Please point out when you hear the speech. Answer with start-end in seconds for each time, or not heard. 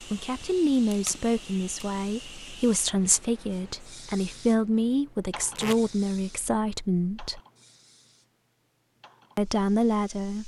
0.0-7.4, 9.3-10.4.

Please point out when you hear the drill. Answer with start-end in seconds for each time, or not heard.
not heard.